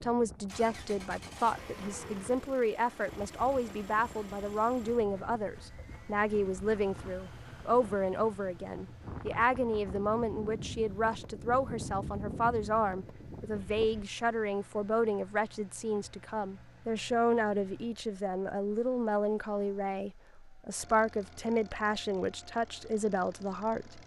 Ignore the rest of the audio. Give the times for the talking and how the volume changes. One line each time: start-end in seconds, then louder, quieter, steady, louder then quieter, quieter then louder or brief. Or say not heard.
0.0-24.0 steady.